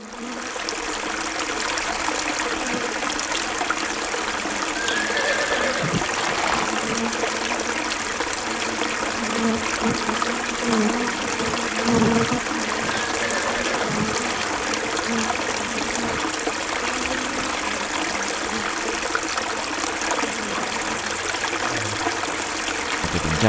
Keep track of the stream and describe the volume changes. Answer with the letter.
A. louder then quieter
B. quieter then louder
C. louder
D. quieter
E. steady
E.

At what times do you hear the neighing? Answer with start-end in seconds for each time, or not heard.
4.8-6.7, 13.1-14.6.